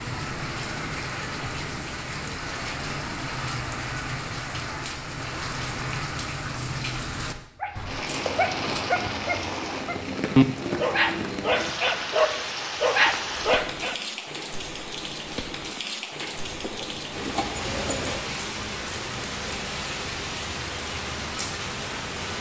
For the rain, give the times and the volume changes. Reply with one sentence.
The rain can be heard from 0.0 to 22.3 s, at a steady volume.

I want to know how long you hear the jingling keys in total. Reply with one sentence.
The jingling keys can be heard for 3 seconds in total.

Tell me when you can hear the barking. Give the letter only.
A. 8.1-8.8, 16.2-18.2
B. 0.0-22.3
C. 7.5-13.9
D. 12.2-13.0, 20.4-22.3
C.